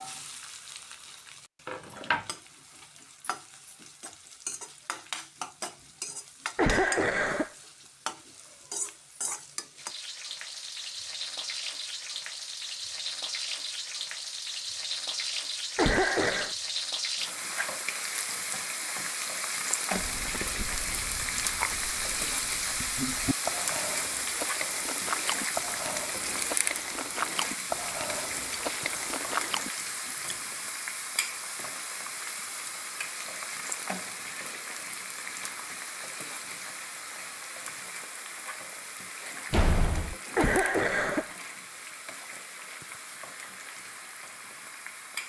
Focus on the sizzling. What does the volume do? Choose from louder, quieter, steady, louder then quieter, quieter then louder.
louder then quieter.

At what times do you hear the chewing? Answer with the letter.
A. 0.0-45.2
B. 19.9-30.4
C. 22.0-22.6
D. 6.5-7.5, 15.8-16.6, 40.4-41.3
B.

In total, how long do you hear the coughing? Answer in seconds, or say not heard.
3 s.